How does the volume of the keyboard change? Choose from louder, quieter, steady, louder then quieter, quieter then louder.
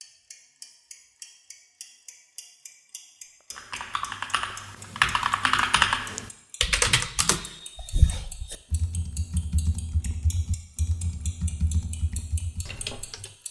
quieter.